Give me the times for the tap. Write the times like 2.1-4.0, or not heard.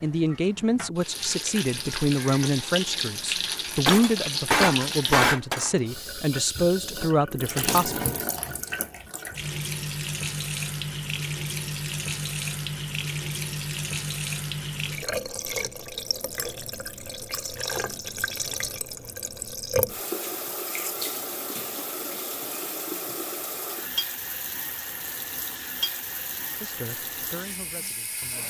0.0-28.4.